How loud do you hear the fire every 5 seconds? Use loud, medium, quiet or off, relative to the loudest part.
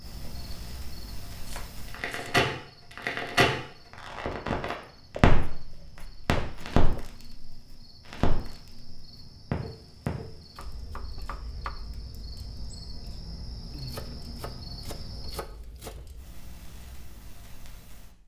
loud, loud, quiet, quiet.